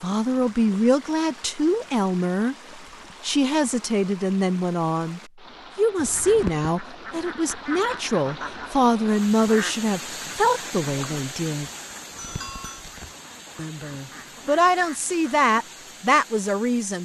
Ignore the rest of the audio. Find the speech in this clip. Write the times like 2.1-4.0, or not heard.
0.0-2.5, 3.2-11.7, 13.6-17.0.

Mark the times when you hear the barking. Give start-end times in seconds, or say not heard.
not heard.